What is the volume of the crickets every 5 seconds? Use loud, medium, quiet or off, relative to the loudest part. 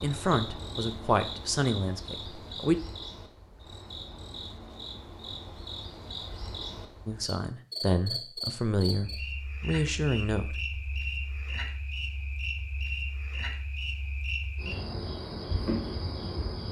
medium, loud, loud, loud.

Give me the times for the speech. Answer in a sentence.
You can hear the speech from 0.0 to 2.8 s and from 7.0 to 10.8 s.